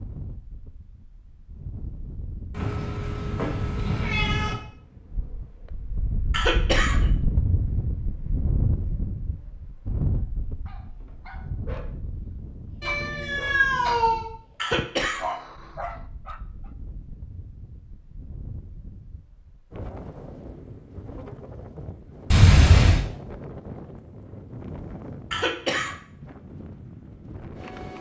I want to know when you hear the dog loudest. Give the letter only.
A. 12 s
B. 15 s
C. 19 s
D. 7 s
B.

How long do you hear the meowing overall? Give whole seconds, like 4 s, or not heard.
4 s.